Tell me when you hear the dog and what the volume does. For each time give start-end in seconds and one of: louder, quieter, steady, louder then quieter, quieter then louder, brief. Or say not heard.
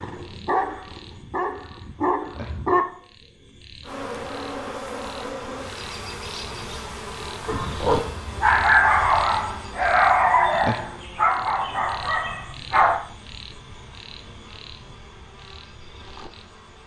0.0-2.9 brief
7.5-13.0 quieter.